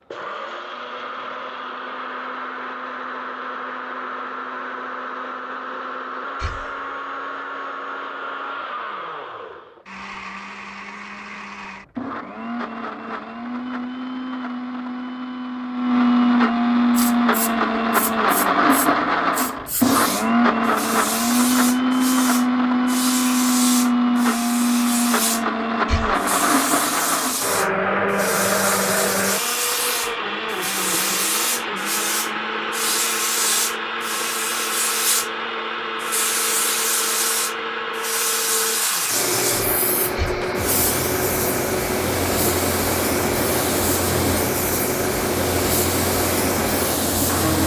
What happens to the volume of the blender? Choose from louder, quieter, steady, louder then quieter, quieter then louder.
louder then quieter.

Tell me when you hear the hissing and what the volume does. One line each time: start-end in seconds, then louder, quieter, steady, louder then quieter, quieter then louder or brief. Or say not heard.
16.9-47.6 louder.